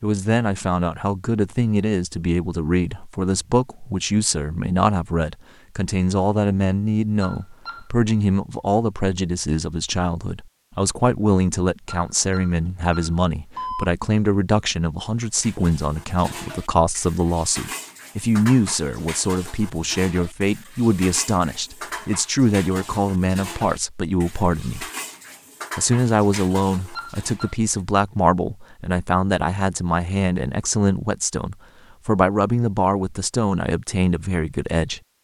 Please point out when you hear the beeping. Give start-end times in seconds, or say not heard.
7.2-7.8, 11.8-13.8, 26.9-27.6.